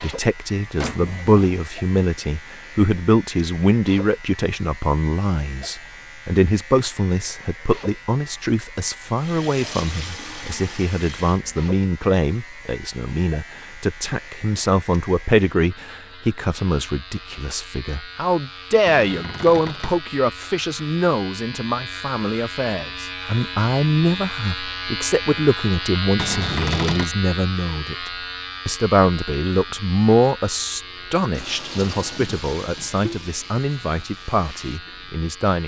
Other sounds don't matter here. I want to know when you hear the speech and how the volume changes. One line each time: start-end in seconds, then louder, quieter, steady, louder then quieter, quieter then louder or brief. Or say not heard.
0.0-35.6 steady.